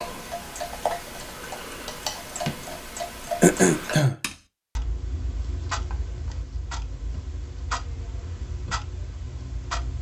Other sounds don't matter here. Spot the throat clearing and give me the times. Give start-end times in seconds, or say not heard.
3.4-4.2.